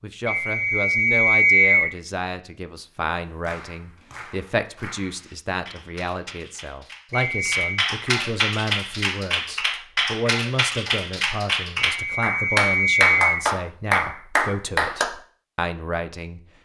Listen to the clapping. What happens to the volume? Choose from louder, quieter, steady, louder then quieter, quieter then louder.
louder.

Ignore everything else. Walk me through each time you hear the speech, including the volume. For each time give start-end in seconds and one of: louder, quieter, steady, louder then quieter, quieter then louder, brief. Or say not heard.
0.0-16.4 steady.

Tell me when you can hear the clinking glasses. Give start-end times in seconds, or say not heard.
not heard.